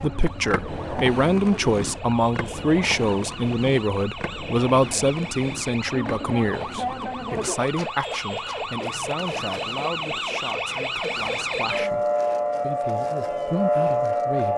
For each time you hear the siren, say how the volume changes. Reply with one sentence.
You can hear the siren from 0.0 to 14.5 s, getting louder.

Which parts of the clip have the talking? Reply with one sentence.
You can hear the talking from 0.0 to 14.5 s.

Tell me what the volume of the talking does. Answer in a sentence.
The loudness of the talking goes down.